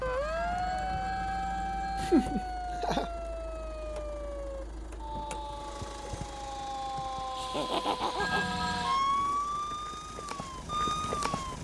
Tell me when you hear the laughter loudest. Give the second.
2 s.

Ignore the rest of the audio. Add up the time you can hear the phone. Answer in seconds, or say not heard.
3 s.